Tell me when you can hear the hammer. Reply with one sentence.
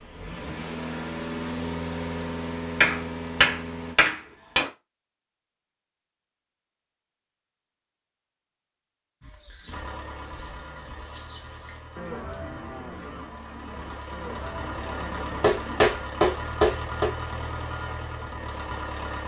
The hammer can be heard from 2.8 to 4.7 s and from 15.4 to 17.1 s.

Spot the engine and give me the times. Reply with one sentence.
You can hear the engine from 0.0 to 4.0 s and from 9.7 to 19.2 s.